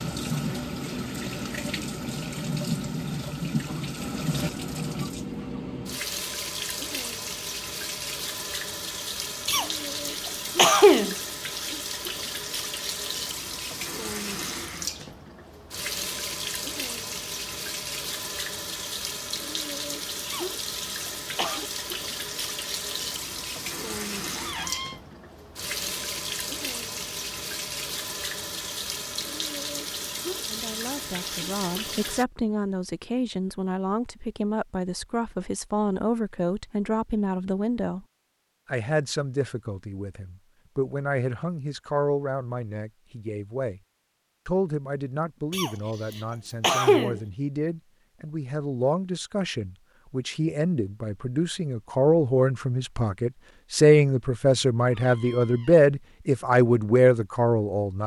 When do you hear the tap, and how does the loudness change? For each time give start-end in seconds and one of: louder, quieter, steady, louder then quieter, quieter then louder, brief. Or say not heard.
0.0-32.2 steady.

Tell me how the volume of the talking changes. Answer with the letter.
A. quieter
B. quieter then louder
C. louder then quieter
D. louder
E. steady
D.